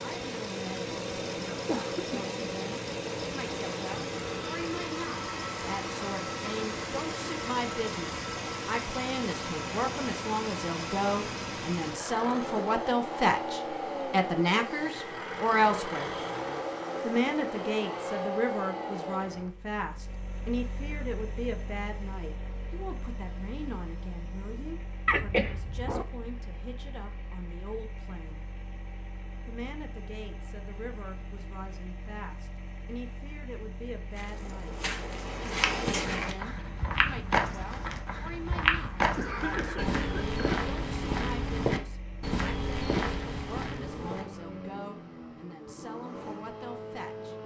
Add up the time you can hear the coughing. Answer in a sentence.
You can hear the coughing for 3 seconds altogether.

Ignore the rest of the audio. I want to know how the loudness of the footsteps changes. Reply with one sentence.
The loudness of the footsteps stays about the same.